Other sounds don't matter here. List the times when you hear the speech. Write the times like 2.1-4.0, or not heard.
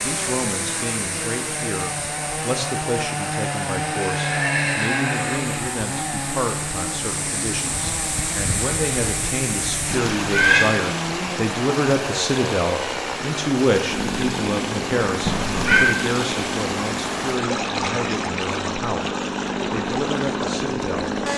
0.0-21.1.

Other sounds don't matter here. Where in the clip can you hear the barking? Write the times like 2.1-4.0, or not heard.
not heard.